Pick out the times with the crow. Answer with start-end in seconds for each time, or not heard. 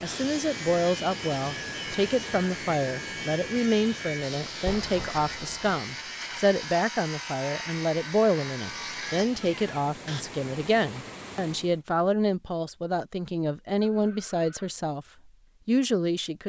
not heard.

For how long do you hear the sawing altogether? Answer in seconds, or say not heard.
10 s.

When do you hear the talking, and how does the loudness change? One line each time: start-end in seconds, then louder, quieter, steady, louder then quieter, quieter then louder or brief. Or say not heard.
0.0-15.1 steady
15.7-16.4 brief.